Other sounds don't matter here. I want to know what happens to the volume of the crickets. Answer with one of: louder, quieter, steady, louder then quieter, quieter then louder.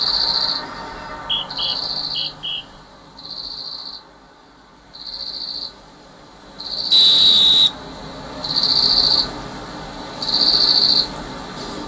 quieter then louder.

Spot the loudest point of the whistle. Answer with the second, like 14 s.
7 s.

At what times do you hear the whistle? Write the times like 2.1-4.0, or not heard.
1.1-2.6, 6.9-7.7.